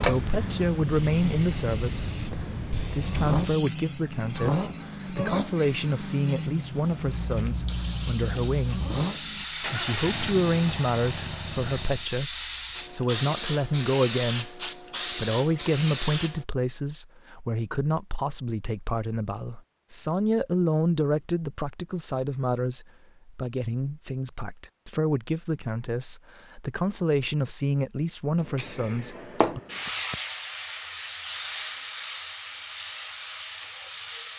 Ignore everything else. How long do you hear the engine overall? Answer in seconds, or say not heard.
12 s.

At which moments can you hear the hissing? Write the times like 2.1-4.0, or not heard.
0.0-16.4, 28.4-34.3.